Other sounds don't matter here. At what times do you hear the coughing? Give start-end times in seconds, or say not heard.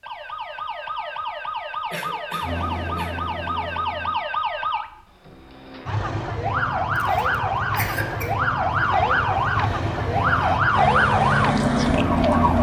1.9-3.2, 7.0-8.3.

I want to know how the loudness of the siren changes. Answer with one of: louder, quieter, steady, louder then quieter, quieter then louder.
louder.